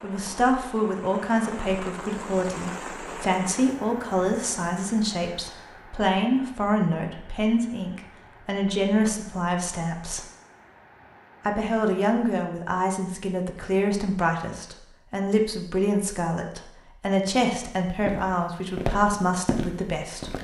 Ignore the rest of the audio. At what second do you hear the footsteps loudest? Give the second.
19 s.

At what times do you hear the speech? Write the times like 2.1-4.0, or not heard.
0.0-10.2, 11.4-20.3.